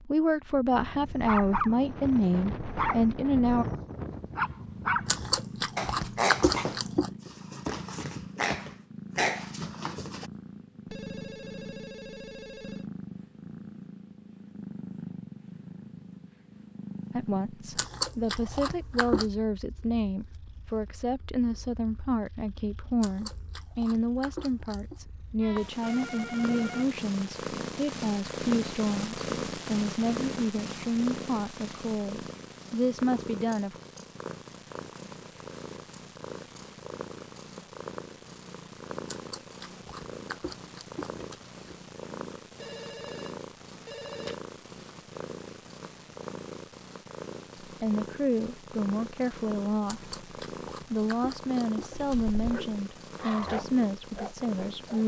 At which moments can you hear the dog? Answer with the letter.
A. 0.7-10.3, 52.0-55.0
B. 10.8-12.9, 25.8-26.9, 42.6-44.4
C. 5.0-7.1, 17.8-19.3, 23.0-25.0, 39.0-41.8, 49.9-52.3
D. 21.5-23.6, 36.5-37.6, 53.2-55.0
A.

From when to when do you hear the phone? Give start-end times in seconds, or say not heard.
10.8-12.9, 25.8-26.9, 42.6-44.4.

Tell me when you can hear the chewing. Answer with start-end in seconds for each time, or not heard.
5.0-7.1, 17.8-19.3, 23.0-25.0, 39.0-41.8, 49.9-52.3.